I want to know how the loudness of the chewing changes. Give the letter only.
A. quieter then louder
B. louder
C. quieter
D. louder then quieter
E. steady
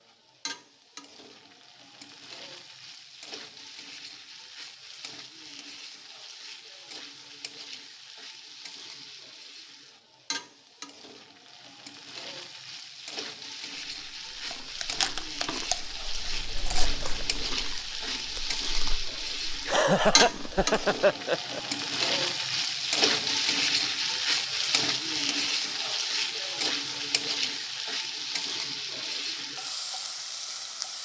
C.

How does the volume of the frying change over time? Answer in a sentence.
The volume of the frying goes up.